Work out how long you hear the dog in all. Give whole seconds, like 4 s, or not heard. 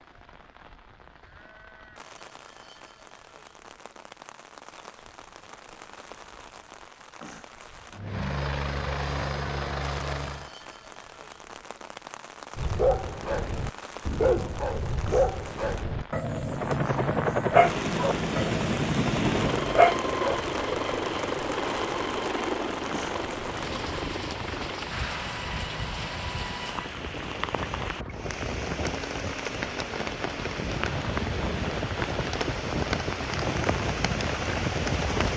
8 s.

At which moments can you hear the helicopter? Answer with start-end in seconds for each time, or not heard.
7.9-10.5, 16.4-35.3.